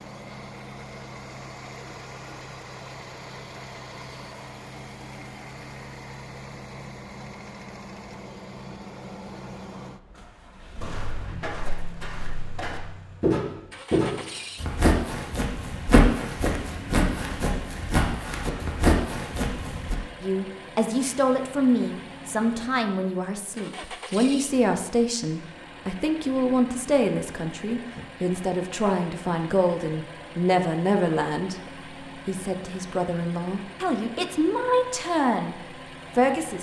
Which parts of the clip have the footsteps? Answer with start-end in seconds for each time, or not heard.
10.8-19.9.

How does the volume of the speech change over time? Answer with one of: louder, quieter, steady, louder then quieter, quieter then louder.
steady.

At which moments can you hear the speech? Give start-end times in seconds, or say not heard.
20.2-31.6, 32.2-36.5.